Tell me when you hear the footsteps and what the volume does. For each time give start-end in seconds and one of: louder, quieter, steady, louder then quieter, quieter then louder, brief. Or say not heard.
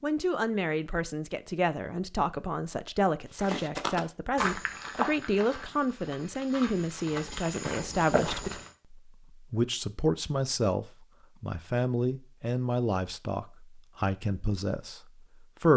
3.4-8.7 quieter then louder.